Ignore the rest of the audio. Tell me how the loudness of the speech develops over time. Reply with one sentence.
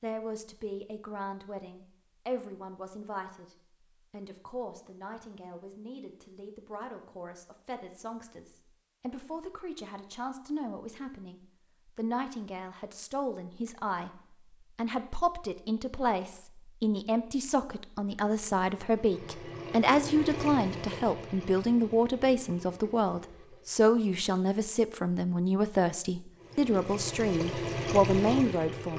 The volume of the speech goes up.